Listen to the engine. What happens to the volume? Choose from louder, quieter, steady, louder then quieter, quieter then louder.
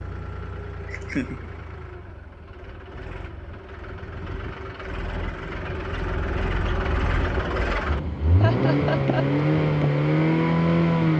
louder.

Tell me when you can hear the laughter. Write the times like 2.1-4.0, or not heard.
0.8-1.5, 8.4-9.2.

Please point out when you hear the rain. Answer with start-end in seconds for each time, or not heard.
not heard.